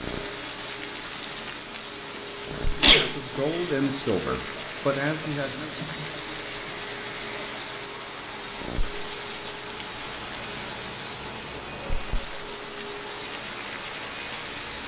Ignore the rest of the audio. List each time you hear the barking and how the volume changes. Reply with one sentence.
You can't hear the barking here.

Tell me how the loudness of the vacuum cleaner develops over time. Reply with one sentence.
The volume of the vacuum cleaner stays about the same.